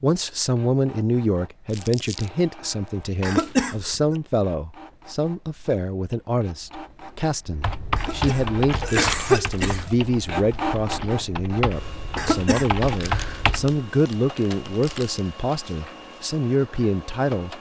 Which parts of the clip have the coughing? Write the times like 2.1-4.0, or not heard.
3.2-4.2, 8.0-9.9, 12.2-12.7.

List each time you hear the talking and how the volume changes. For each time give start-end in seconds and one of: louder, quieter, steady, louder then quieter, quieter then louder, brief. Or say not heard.
0.0-17.5 steady.